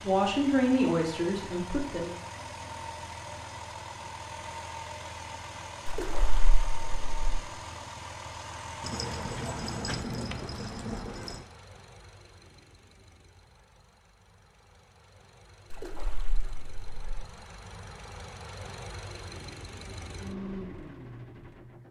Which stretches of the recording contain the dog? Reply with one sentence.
The dog can be heard from 8.8 to 11.4 s.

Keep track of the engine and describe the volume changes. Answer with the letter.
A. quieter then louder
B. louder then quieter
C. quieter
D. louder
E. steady
A.